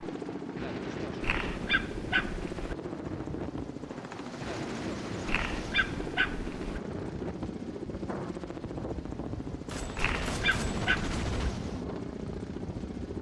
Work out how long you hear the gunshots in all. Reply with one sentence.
The gunshots can be heard for 2 seconds in total.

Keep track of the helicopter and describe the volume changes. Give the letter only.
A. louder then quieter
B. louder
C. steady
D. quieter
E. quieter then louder
C.